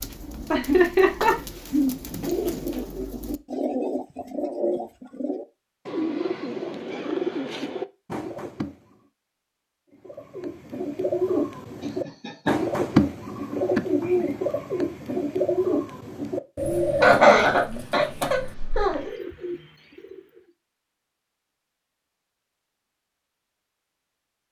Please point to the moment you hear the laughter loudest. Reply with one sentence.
The loudest moment of the laughter is at 17 seconds.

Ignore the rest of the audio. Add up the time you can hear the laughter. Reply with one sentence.
You can hear the laughter for 4 seconds altogether.